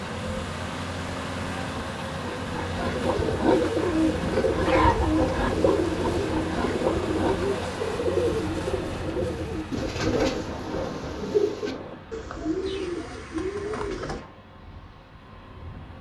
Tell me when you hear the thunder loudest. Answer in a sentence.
The volume of the thunder peaks at 10 seconds.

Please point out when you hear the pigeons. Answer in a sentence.
You can hear the pigeons from 3.0 to 14.2 s.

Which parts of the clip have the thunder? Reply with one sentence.
You can hear the thunder from 9.9 to 11.9 s.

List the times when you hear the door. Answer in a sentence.
You can't hear the door here.